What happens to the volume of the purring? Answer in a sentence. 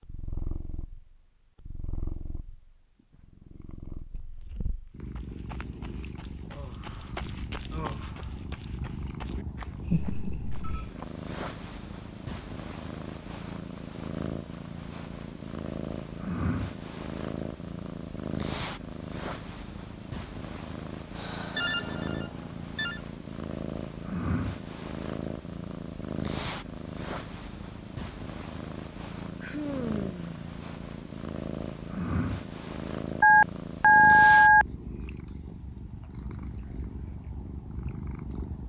The volume of the purring goes up.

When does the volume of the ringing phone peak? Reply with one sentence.
The loudest moment of the ringing phone is at 34 seconds.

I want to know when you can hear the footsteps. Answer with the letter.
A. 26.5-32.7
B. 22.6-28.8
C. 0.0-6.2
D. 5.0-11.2
D.